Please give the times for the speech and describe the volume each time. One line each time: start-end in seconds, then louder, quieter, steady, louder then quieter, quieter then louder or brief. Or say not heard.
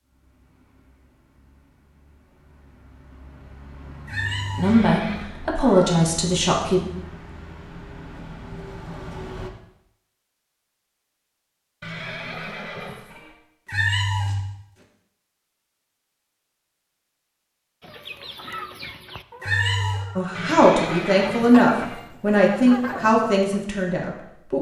4.5-6.8 brief
20.1-24.5 quieter.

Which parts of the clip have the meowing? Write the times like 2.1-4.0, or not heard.
4.0-4.8, 5.6-6.0, 13.7-14.4, 19.4-20.1.